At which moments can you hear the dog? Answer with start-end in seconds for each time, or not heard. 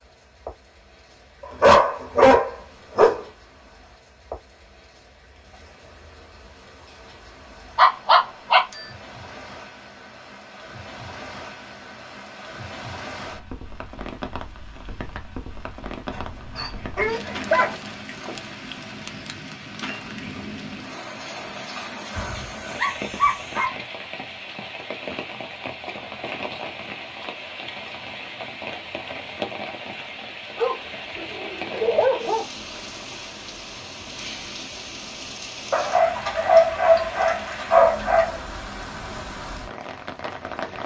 1.6-3.2, 7.8-8.8, 16.1-17.8, 22.1-23.6, 30.6-32.5, 35.7-38.4.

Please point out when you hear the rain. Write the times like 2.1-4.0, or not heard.
0.0-40.8.